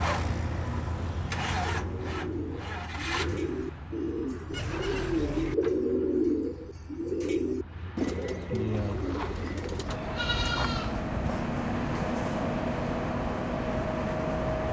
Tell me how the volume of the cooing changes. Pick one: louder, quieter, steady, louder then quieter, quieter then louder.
louder then quieter.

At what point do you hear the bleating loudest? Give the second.
10 s.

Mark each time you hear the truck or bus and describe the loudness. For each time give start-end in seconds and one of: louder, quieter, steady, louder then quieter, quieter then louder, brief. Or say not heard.
0.0-14.6 quieter then louder.